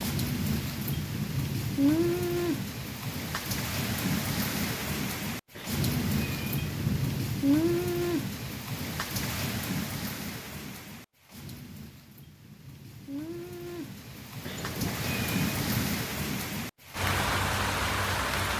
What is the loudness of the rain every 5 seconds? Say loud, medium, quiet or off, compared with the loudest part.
loud, loud, medium, loud.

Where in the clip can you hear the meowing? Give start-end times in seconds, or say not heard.
5.5-7.3, 14.4-15.9.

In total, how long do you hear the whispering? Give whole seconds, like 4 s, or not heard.
not heard.